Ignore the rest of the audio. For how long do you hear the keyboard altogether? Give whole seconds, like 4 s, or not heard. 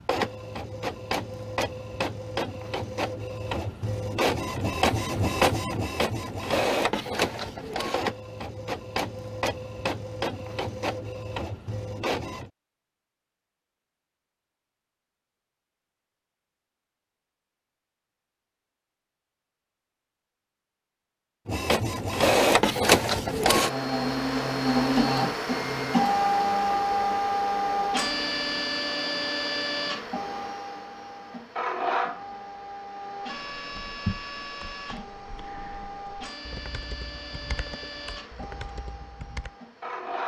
6 s.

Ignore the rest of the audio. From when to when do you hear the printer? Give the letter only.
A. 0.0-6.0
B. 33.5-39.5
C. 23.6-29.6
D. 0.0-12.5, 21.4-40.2
D.